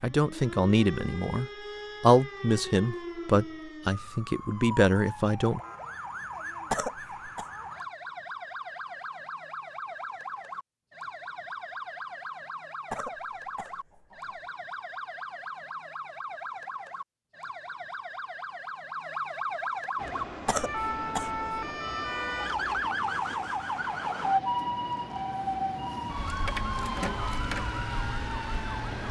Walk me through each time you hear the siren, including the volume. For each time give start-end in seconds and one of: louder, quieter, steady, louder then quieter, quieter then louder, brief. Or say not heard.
0.0-29.0 louder.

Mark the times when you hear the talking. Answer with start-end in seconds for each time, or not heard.
0.0-5.6.